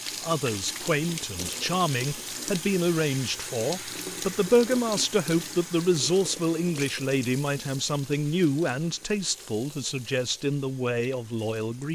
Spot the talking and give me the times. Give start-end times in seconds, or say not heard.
0.2-11.9.